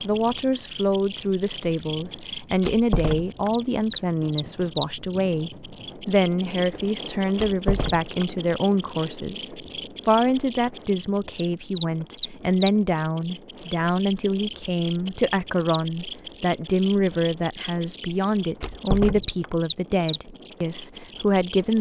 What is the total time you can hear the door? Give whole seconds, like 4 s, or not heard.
3 s.